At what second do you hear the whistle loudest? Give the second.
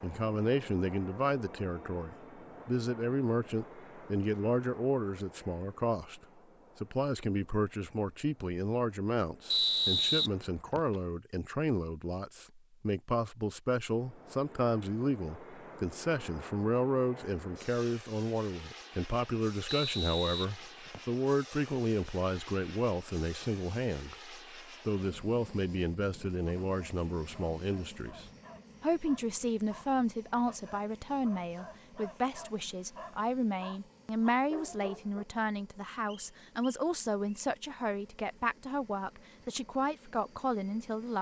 10 s.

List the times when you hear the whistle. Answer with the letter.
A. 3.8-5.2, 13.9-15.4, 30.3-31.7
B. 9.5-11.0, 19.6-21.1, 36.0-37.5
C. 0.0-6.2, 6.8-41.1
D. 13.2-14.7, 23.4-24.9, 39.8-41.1
B.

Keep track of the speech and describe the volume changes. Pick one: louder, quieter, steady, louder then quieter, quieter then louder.
steady.